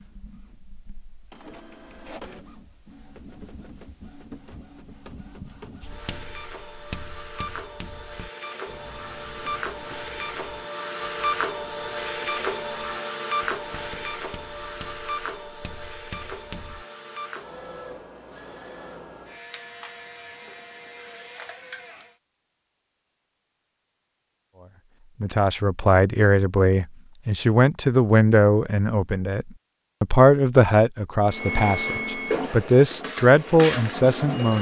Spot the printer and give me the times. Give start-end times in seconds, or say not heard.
0.0-22.1, 31.2-34.5.